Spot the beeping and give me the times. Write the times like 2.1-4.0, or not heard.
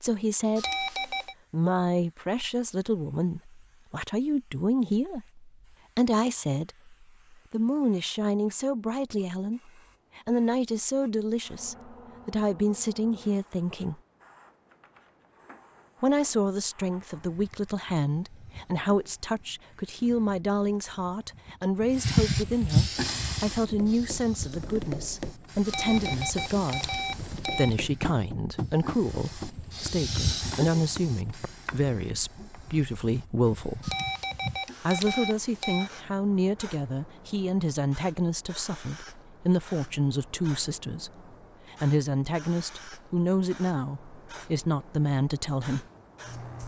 0.6-1.4, 25.6-27.8, 33.8-35.9.